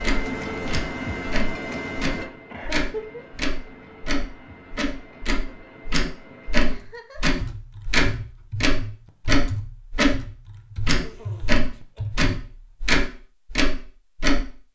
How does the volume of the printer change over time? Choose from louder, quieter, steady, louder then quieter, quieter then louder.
quieter.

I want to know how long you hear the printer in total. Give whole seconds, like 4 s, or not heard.
7 s.